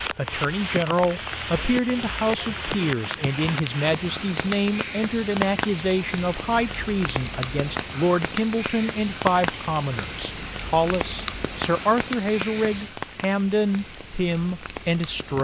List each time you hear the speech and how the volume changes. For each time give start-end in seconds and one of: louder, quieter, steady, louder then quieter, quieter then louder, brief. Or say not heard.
0.1-15.3 steady.